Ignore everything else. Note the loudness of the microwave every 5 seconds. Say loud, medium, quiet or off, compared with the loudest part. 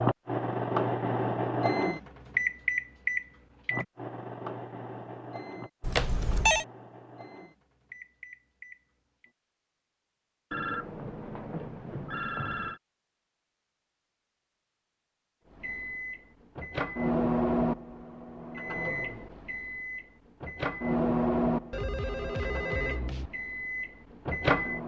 loud, quiet, off, loud, loud.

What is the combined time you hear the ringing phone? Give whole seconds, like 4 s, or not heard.
5 s.